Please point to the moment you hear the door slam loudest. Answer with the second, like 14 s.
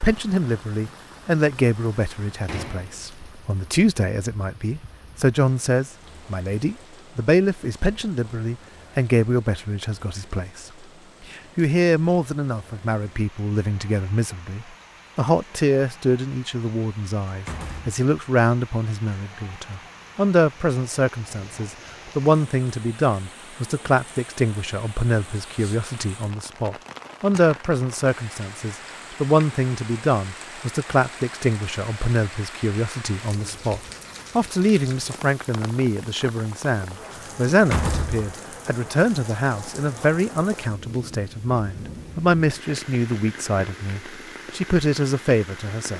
38 s.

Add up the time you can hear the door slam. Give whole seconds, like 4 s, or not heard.
2 s.